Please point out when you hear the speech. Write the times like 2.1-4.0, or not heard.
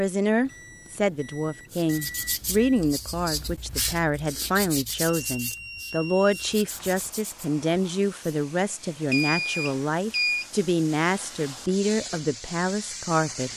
0.0-13.5.